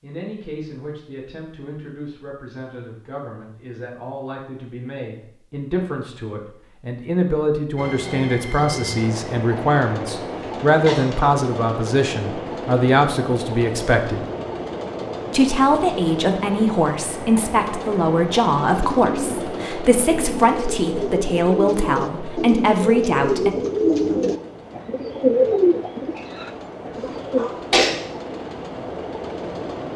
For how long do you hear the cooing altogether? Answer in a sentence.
The cooing can be heard for 9 seconds in total.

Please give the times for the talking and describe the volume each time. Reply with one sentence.
You can hear the talking from 0.0 to 14.2 s, getting louder; and from 15.3 to 23.5 s, at a steady volume.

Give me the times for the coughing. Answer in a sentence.
The coughing can be heard from 10.8 to 11.3 s and from 26.9 to 27.9 s.